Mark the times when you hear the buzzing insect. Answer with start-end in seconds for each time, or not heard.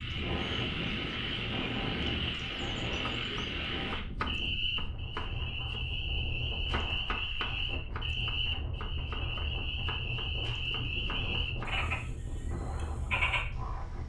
not heard.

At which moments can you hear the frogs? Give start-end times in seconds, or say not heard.
0.0-14.0.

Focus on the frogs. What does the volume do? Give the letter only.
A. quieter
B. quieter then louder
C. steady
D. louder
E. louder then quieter
C.